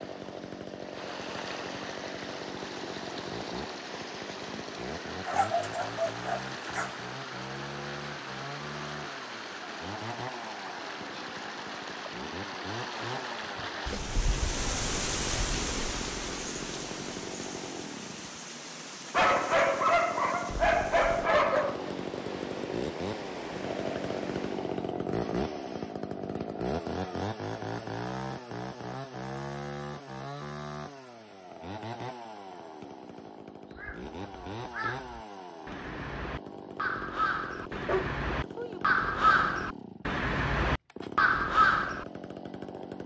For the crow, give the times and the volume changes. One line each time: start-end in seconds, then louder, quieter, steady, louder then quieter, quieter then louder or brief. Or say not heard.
33.8-42.0 louder.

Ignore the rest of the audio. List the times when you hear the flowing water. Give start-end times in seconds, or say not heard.
0.0-24.9.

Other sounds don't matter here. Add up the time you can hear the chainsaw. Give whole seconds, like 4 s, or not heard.
43 s.